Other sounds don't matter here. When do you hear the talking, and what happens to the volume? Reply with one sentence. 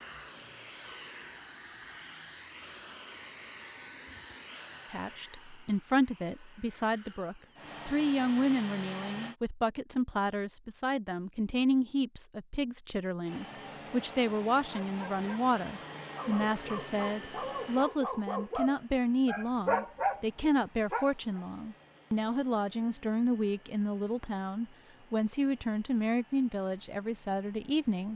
The talking can be heard from 4.9 to 28.1 s, at a steady volume.